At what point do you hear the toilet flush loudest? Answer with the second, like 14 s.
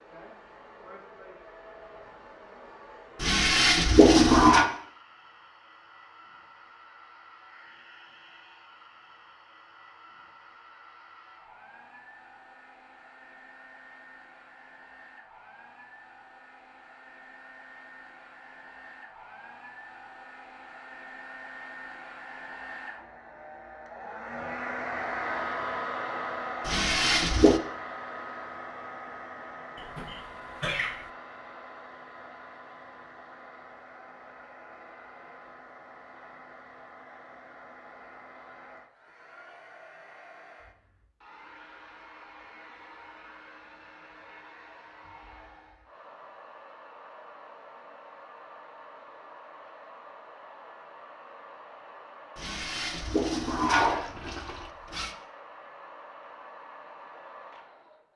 4 s.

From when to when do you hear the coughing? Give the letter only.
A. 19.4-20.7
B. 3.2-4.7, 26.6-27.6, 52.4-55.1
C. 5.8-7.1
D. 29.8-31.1
D.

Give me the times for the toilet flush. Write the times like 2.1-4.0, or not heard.
3.2-4.7, 26.6-27.6, 52.4-55.1.